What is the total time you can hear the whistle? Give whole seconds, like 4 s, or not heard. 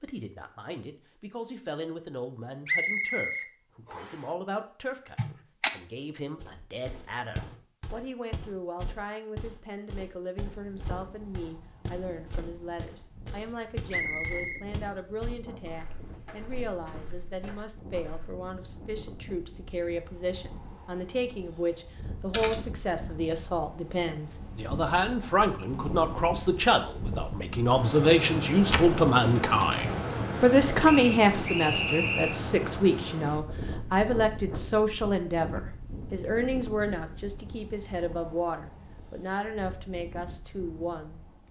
4 s.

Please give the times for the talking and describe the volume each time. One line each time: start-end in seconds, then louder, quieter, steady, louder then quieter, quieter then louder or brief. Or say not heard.
0.0-41.4 louder then quieter.